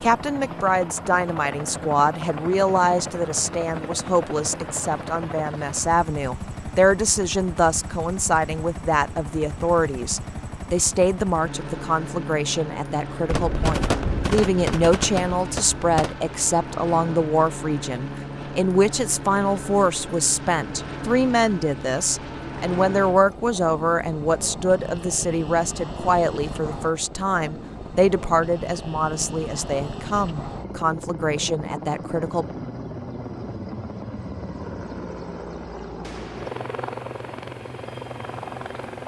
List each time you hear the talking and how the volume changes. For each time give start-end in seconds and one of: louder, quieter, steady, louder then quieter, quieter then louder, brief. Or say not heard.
0.0-32.5 steady.